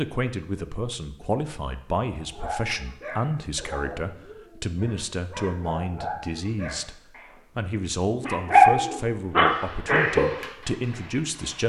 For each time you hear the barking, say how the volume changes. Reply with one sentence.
The barking can be heard from 2.2 to 7.4 s, getting quieter then louder; and briefly from 8.2 to 10.2 s.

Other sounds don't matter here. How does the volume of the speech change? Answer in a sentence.
The volume of the speech stays about the same.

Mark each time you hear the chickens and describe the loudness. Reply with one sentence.
You can't hear the chickens here.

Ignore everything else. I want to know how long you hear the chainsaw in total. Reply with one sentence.
The chainsaw can't be heard in this clip.